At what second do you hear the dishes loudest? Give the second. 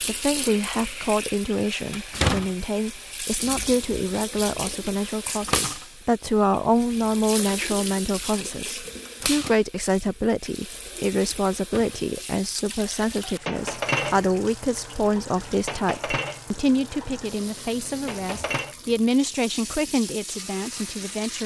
14 s.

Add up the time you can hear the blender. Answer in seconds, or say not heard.
not heard.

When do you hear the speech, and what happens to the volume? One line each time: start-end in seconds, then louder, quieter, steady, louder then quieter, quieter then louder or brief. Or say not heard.
0.0-21.4 steady.